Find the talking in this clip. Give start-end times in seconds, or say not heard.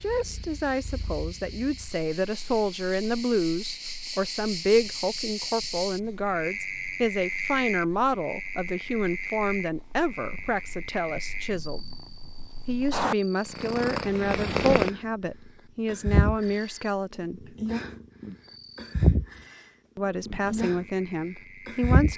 0.0-11.8, 12.7-17.5, 19.9-22.1.